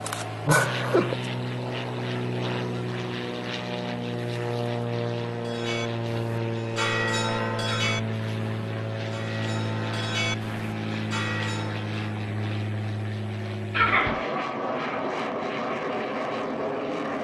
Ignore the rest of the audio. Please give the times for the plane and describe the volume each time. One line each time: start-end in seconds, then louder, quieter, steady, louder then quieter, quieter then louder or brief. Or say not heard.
0.0-17.2 steady.